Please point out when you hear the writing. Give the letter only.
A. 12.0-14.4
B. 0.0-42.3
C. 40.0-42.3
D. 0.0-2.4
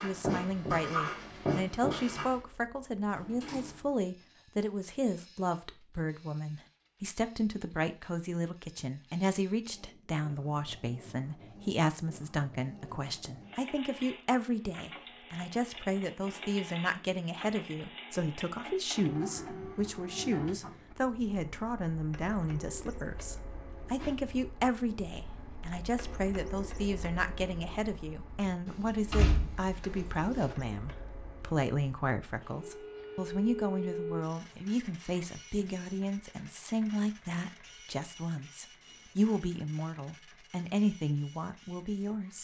D.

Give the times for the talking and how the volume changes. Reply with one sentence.
The talking can be heard from 0.0 to 42.3 s, at a steady volume.